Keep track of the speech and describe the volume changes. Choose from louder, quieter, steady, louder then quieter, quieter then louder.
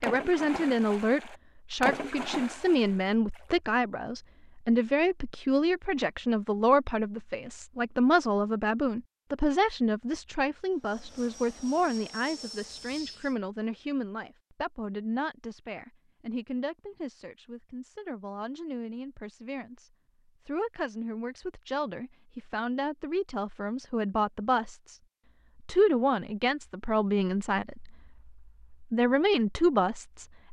quieter then louder.